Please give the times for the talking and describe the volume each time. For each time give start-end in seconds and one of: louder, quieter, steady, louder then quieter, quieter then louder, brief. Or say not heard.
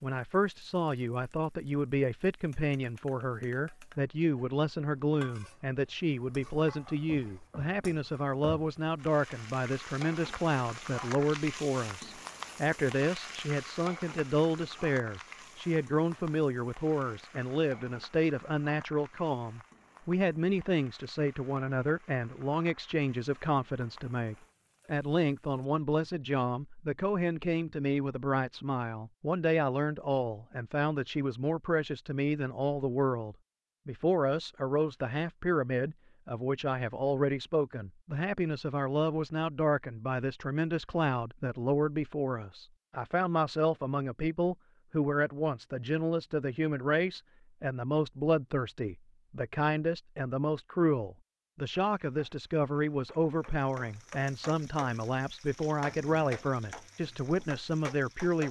0.0-58.4 steady.